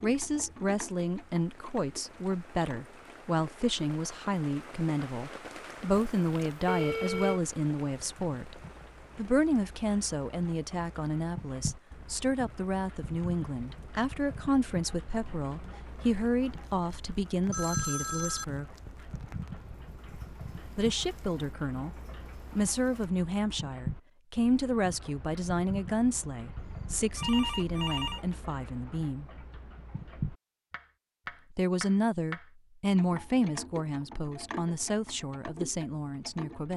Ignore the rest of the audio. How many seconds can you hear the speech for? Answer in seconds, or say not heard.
32 s.